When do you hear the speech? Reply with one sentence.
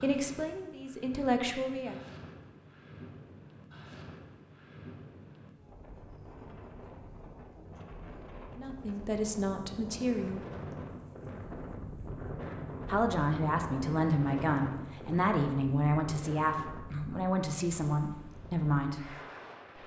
The speech can be heard from 0.0 to 2.0 s, from 8.6 to 10.4 s and from 12.8 to 19.1 s.